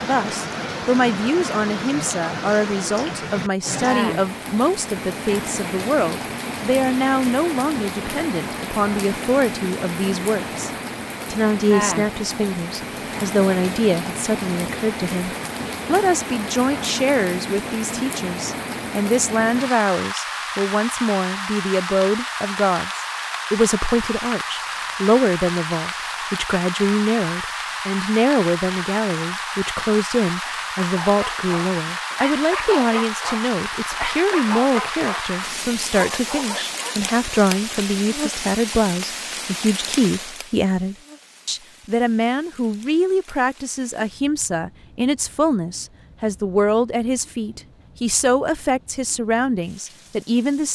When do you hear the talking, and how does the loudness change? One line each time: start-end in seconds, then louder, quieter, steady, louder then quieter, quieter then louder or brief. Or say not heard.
0.0-10.7 steady
11.3-50.7 steady.